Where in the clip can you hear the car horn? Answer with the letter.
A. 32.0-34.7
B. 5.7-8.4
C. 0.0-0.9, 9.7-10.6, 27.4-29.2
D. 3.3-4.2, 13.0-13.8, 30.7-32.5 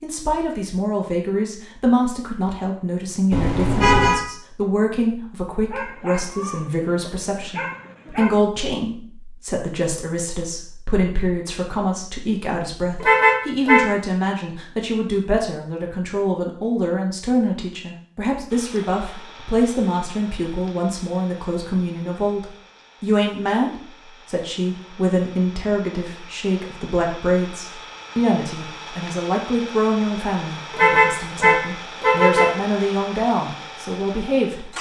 D.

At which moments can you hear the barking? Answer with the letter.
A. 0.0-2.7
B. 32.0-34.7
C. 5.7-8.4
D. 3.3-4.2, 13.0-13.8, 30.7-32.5
C.